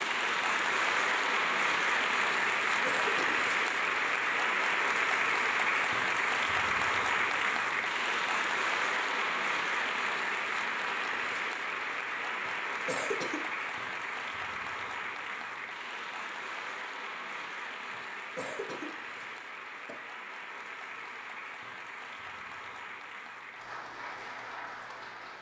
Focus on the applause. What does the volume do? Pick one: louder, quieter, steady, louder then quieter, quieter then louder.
quieter.